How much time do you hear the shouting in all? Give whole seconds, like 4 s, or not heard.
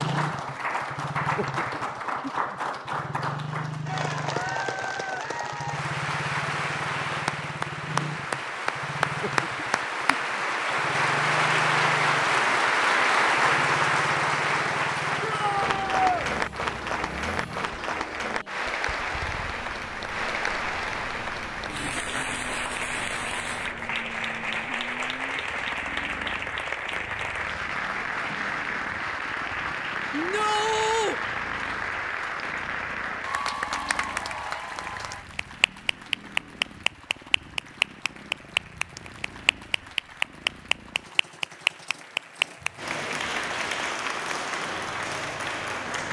2 s.